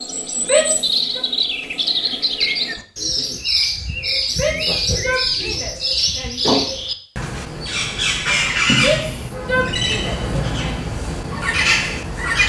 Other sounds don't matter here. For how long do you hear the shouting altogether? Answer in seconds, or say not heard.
5 s.